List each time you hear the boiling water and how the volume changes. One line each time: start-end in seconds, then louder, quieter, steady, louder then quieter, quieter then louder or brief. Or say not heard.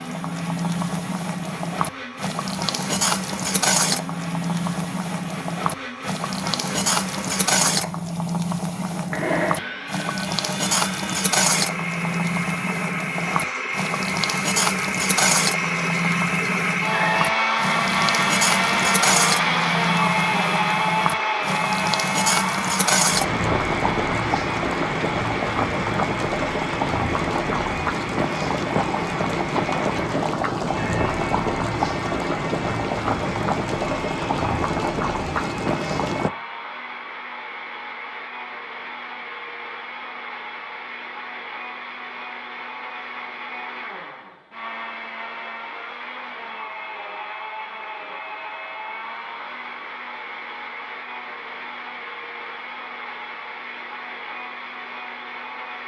0.0-36.3 steady.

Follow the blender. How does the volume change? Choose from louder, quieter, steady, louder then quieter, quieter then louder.
louder then quieter.